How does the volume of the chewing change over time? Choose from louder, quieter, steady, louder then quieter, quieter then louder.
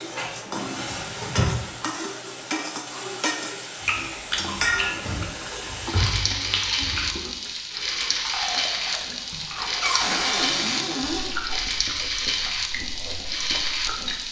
quieter.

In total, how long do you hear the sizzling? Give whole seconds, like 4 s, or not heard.
14 s.